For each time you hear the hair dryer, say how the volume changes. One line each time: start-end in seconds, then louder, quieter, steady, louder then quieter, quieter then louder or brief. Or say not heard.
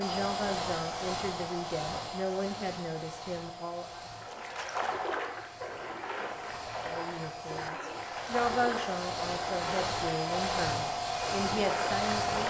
0.0-12.4 quieter then louder.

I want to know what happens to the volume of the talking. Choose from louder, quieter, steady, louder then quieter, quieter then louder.
steady.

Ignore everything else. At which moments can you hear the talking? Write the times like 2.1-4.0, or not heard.
0.0-4.0, 6.8-12.4.